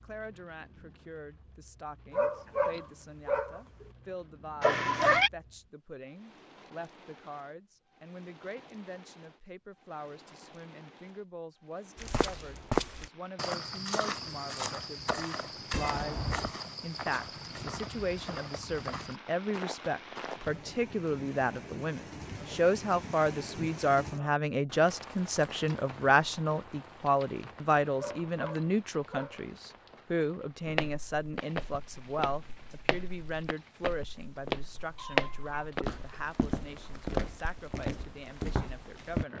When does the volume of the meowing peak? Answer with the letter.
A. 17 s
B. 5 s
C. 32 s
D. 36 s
B.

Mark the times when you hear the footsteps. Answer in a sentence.
The footsteps can be heard from 11.9 to 20.6 s and from 30.6 to 39.2 s.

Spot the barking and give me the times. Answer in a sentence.
The barking can be heard from 2.1 to 3.9 s and from 27.9 to 29.7 s.